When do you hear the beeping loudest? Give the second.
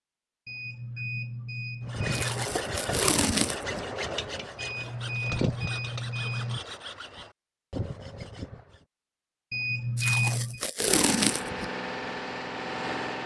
10 s.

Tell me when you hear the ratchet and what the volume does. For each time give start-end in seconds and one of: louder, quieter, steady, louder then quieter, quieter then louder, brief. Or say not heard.
not heard.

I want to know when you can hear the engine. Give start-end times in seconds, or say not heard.
10.8-13.2.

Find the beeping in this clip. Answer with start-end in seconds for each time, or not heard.
0.5-2.5, 4.5-6.6, 9.5-10.6.